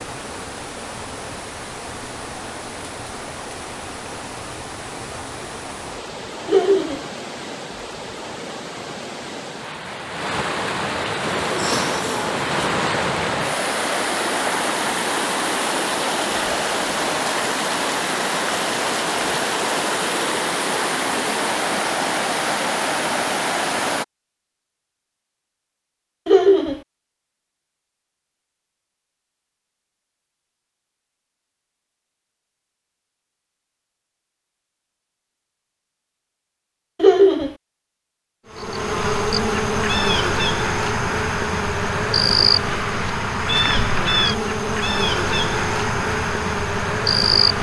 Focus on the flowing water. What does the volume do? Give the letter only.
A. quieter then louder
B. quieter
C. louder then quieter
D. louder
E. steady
D.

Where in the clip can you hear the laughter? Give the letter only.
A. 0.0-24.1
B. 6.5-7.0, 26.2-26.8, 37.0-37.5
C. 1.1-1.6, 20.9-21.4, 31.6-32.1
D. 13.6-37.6
B.